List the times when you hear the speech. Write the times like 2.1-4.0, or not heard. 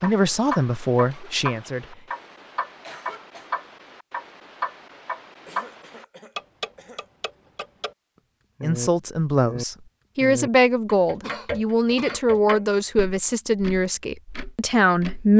0.0-1.9, 8.6-15.3.